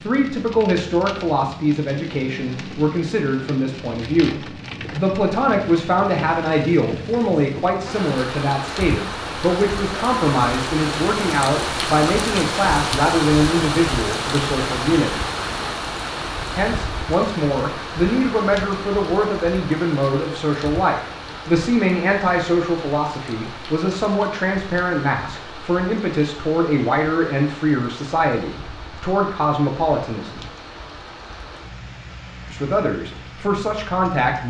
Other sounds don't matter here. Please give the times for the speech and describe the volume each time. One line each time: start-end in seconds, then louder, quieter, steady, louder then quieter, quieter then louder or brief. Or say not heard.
0.0-15.1 steady
16.6-30.4 steady
32.5-34.4 brief.